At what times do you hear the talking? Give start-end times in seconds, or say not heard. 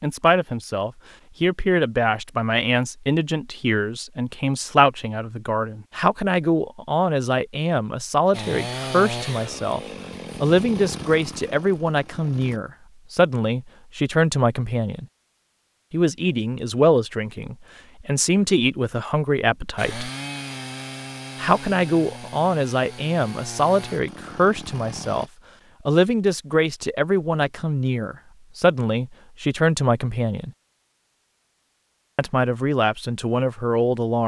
0.0-9.8, 10.4-15.1, 15.9-20.1, 21.4-25.2, 25.9-30.5, 32.1-34.2.